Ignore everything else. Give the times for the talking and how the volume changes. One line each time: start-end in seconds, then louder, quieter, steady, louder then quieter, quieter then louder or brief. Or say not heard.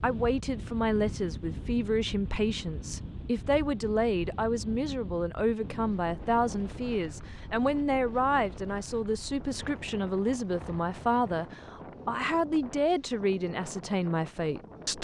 0.0-15.0 steady.